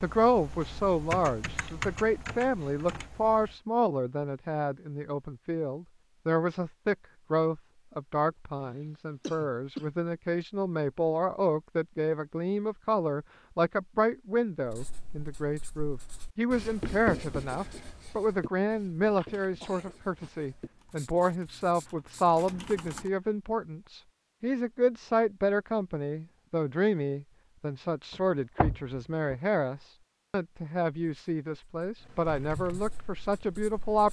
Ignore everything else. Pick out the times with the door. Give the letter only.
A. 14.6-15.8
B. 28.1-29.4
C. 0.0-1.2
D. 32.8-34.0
B.